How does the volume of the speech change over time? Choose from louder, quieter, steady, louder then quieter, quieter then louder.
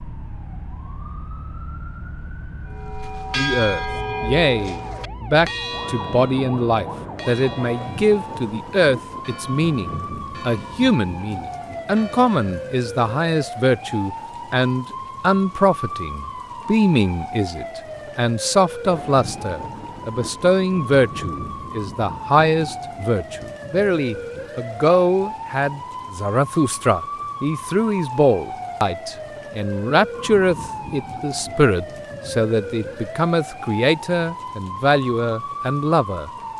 steady.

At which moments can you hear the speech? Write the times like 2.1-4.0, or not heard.
3.4-36.3.